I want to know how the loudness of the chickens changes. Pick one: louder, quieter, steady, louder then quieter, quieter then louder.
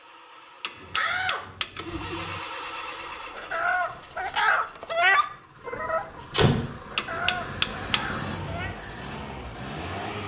louder then quieter.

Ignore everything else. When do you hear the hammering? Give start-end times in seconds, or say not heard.
0.6-2.4, 7.0-8.8.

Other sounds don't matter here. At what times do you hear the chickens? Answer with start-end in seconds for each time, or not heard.
2.6-8.8.